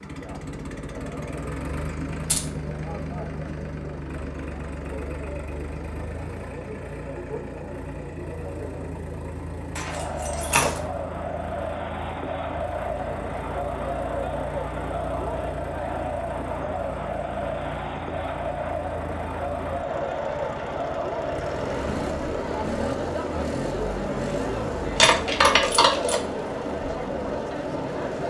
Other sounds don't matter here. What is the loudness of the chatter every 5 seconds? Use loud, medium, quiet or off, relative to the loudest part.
medium, medium, loud, loud, loud, loud.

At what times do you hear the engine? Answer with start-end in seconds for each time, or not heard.
0.0-28.2.